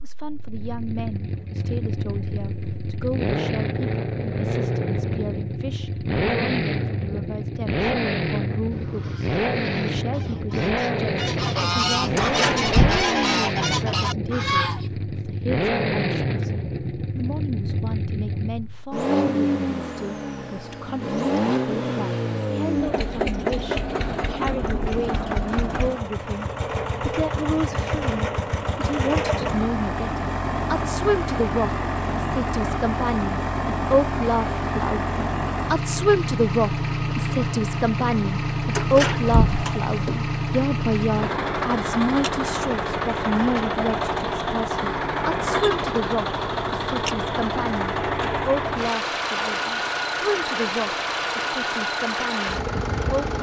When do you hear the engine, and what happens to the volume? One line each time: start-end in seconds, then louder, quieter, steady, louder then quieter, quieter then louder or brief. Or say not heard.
0.1-53.3 steady.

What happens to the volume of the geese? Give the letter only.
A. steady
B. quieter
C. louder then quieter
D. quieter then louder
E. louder
E.